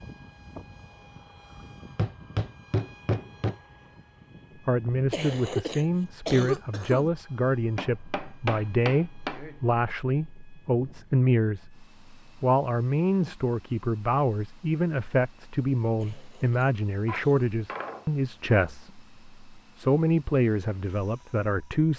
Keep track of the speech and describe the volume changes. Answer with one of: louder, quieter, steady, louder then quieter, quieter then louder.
steady.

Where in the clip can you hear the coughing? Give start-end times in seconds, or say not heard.
5.1-7.1, 16.0-17.5.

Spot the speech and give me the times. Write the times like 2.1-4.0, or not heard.
4.7-21.9.